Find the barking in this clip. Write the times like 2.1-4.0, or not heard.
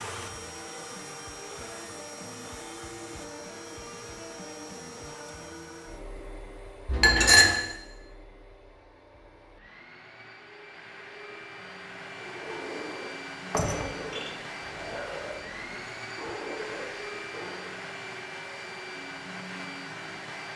12.2-17.9.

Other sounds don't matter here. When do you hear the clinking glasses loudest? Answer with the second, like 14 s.
7 s.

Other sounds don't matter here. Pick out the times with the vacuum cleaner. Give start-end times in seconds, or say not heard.
0.0-20.5.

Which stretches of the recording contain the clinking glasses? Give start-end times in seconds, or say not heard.
6.8-7.5, 13.5-14.3.